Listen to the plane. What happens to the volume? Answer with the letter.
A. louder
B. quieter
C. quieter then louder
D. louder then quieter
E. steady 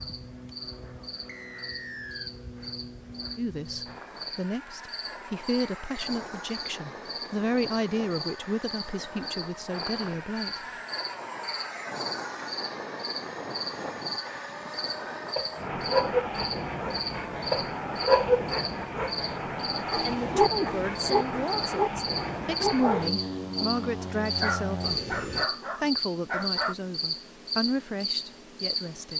A.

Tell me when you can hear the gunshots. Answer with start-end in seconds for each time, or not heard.
not heard.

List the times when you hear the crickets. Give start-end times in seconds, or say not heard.
0.0-29.1.